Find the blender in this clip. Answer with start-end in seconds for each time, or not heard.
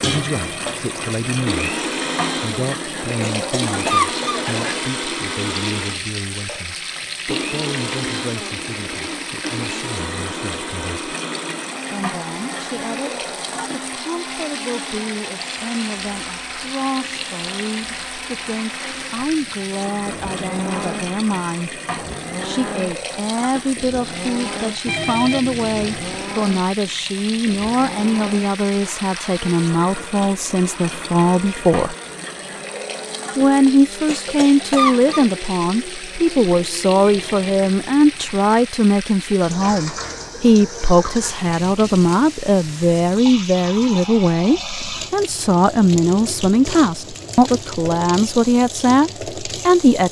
0.0-38.1.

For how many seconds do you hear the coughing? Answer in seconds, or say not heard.
3 s.